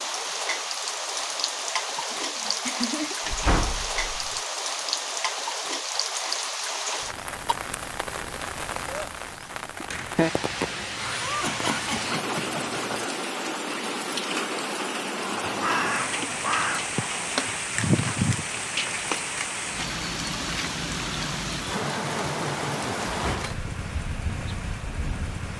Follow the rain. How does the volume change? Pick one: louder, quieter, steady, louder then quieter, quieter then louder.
steady.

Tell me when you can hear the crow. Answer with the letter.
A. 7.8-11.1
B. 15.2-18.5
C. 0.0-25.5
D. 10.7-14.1
B.